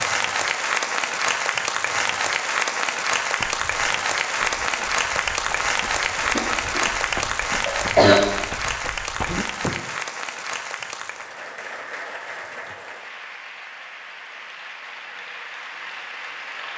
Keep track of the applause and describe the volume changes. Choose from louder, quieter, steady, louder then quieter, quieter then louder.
quieter.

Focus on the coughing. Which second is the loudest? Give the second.
8 s.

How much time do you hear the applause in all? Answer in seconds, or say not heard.
17 s.